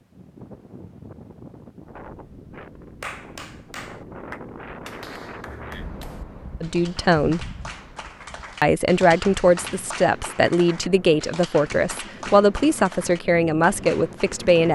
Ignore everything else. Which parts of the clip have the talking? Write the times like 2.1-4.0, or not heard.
6.6-7.5, 8.6-14.7.